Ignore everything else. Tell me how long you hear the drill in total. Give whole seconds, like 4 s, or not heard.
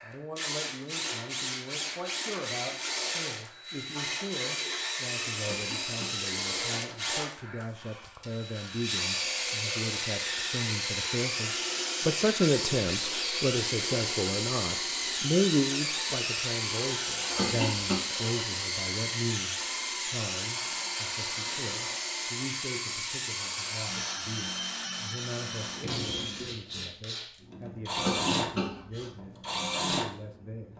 31 s.